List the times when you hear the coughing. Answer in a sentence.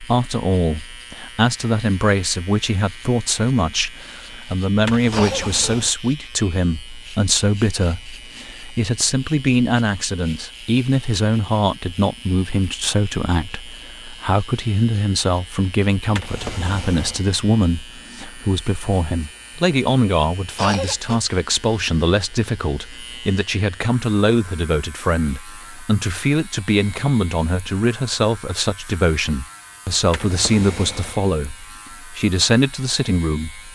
The coughing can be heard from 5.1 to 5.8 s and from 20.6 to 21.2 s.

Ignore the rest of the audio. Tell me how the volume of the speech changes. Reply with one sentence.
The loudness of the speech stays about the same.